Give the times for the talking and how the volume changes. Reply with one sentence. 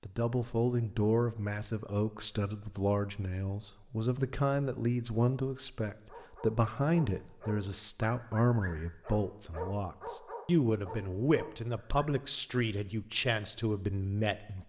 You can hear the talking from 0.0 to 14.6 s, at a steady volume.